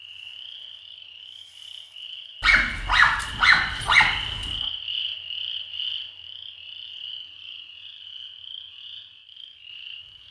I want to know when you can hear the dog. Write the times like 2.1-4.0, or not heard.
2.4-4.6.